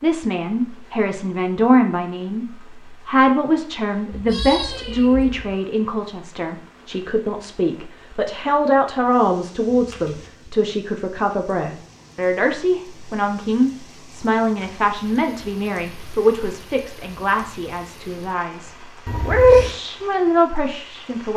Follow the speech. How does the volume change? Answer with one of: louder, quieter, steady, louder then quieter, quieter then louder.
steady.